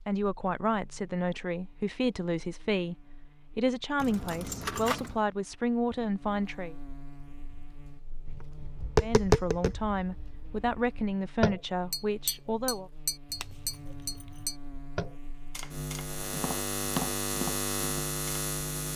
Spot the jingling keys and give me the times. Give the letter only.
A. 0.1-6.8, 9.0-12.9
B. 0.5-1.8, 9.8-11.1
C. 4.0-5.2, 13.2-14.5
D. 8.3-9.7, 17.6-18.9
C.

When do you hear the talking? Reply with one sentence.
The talking can be heard from 0.1 to 6.8 s and from 9.0 to 12.9 s.